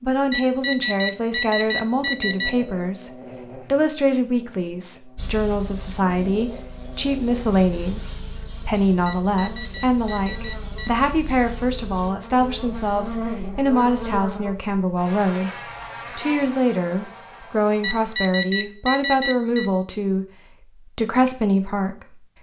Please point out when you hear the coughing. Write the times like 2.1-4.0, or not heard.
not heard.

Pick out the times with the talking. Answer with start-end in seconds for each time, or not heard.
0.0-15.5, 16.1-22.1.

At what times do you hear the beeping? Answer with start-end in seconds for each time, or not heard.
0.3-2.5, 9.1-11.0, 17.8-19.6.